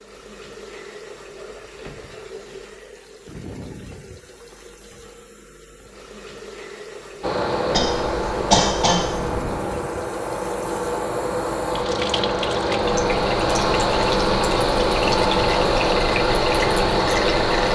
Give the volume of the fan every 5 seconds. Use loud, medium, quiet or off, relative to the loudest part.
off, medium, loud, loud.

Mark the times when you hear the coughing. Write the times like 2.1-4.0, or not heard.
7.7-9.4.